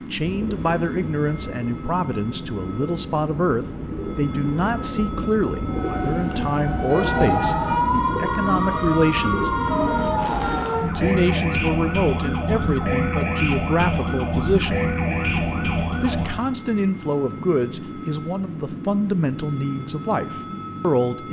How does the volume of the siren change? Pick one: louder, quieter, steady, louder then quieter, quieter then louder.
steady.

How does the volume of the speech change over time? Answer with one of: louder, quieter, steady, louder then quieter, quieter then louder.
steady.